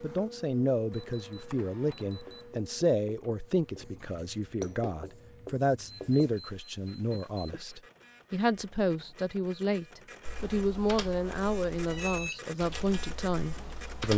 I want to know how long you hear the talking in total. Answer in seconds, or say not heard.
14 s.